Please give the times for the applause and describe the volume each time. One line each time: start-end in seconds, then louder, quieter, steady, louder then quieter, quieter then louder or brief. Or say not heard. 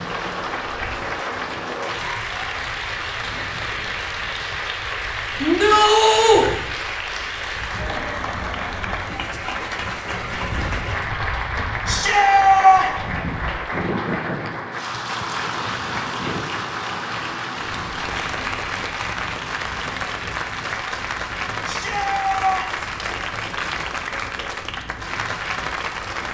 0.0-26.2 steady.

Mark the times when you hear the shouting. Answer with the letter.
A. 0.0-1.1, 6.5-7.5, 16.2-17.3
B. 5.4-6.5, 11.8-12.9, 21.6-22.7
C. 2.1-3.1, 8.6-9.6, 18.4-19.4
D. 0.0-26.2
B.